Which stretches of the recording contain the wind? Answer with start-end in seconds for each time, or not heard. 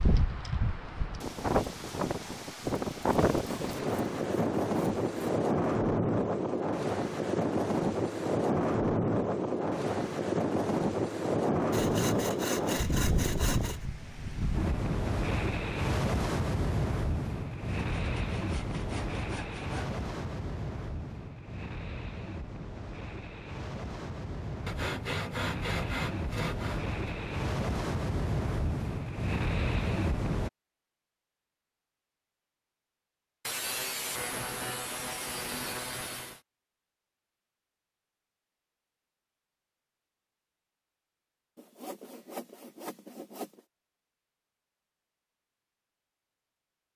0.0-30.5.